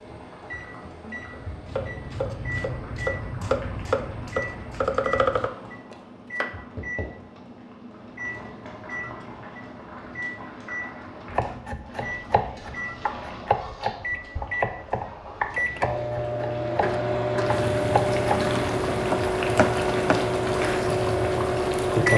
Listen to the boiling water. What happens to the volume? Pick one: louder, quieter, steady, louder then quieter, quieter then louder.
louder.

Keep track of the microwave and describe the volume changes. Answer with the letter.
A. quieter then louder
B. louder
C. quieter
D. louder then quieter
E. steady
B.